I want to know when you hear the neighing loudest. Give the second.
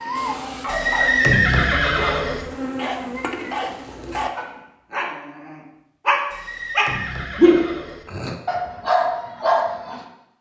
1 s.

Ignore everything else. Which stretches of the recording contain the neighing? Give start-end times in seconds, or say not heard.
0.7-2.5, 6.3-8.1.